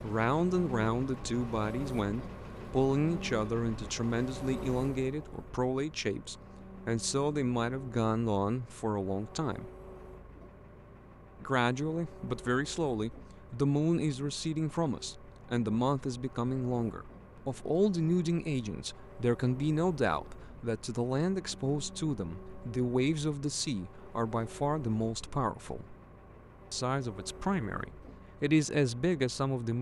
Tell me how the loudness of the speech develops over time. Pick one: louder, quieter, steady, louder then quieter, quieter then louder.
steady.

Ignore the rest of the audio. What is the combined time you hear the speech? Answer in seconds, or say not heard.
27 s.